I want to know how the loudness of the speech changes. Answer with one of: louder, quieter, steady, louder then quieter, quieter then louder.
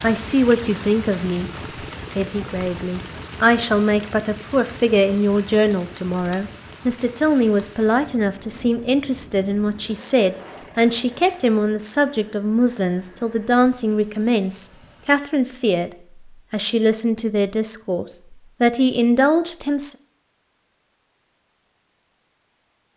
steady.